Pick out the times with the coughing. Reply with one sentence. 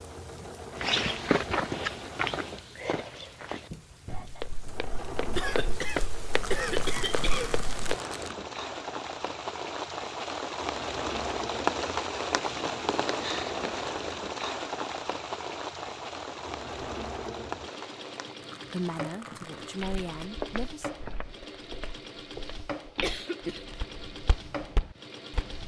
The coughing can be heard from 5.3 to 7.5 s and from 23.0 to 23.6 s.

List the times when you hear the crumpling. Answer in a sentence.
The crumpling can be heard from 6.3 to 8.3 s and from 18.4 to 20.3 s.